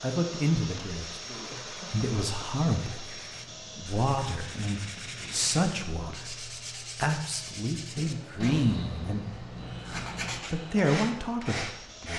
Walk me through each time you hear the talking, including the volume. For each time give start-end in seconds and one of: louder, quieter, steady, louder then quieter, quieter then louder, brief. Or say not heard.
0.0-12.1 steady.